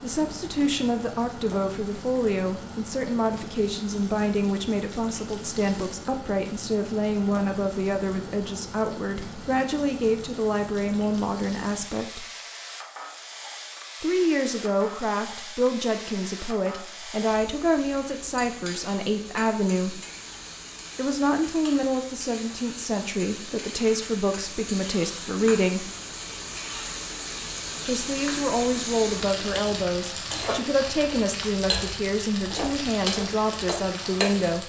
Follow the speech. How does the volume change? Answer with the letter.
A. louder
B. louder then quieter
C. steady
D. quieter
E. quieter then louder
C.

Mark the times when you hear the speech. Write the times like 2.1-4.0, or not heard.
0.0-12.2, 14.0-20.0, 20.9-25.9, 27.9-34.6.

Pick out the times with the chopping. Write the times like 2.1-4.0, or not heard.
not heard.